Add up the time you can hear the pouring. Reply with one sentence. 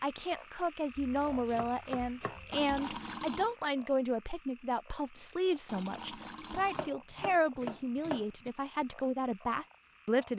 You can hear the pouring for 2 seconds altogether.